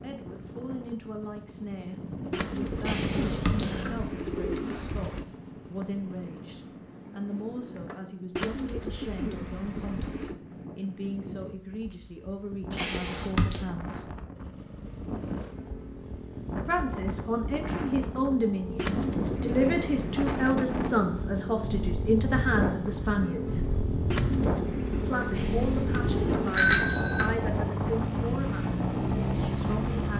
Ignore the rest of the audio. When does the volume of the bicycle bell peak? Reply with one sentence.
The loudest moment of the bicycle bell is at 27 seconds.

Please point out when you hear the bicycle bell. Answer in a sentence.
You can hear the bicycle bell from 2.9 to 3.9 s, from 12.8 to 13.7 s and from 25.4 to 27.3 s.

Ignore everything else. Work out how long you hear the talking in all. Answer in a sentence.
The talking can be heard for 26 seconds in total.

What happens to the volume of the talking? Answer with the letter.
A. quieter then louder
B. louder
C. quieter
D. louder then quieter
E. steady
D.